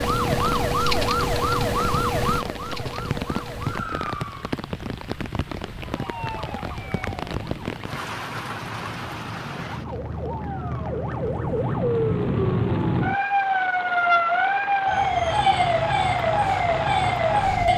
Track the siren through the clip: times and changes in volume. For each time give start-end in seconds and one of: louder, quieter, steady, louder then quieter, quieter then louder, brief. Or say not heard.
0.0-4.6 quieter
5.8-17.7 louder.